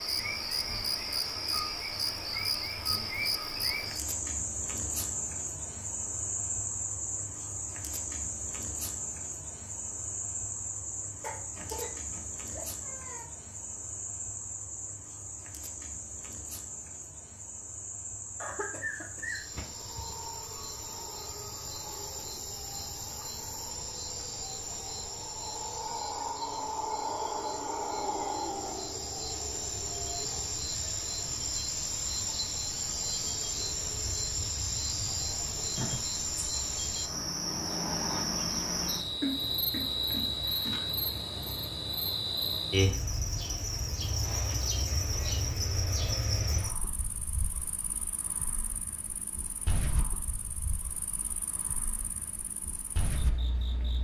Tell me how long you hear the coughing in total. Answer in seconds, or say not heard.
5 s.